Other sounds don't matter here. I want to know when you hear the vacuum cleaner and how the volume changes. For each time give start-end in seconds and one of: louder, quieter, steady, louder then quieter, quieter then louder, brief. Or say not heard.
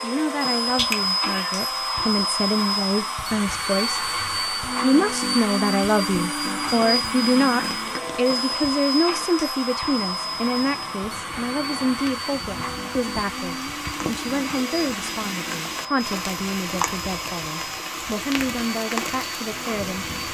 0.0-20.2 quieter.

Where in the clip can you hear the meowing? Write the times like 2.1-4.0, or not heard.
0.8-1.5.